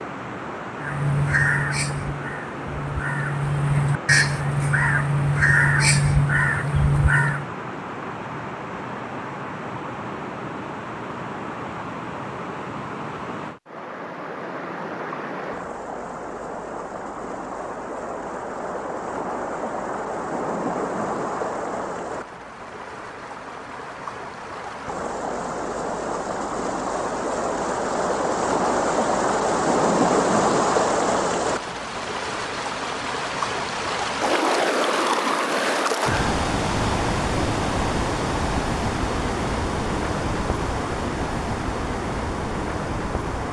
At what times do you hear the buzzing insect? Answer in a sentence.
You can't hear the buzzing insect here.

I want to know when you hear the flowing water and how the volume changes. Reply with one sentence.
The flowing water can be heard from 0.0 to 43.4 s, getting louder.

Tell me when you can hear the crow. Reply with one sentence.
You can hear the crow from 0.8 to 7.5 s.